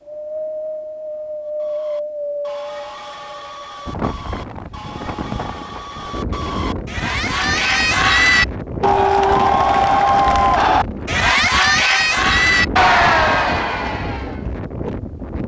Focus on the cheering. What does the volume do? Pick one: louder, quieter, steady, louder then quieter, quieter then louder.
louder.